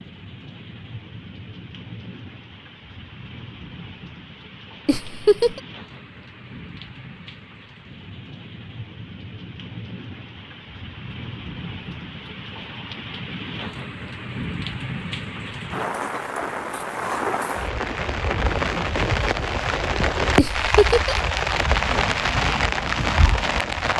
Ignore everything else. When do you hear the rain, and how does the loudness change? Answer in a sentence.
The rain can be heard from 0.0 to 23.9 s, getting louder.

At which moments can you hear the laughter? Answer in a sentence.
The laughter can be heard from 4.8 to 5.6 s and from 20.4 to 21.1 s.